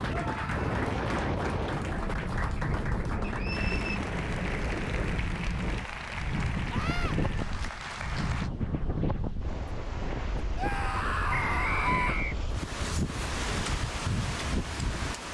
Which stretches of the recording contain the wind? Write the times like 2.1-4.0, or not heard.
0.0-15.2.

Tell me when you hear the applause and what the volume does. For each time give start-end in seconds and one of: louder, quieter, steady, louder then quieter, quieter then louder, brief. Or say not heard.
0.0-8.5 steady.